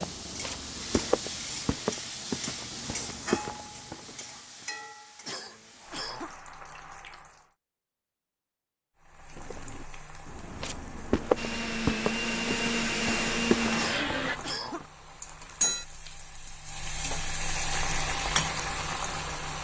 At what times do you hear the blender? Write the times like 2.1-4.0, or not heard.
11.3-14.4.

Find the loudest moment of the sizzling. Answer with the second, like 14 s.
18 s.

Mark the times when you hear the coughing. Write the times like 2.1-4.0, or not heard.
5.2-6.3, 13.8-14.9.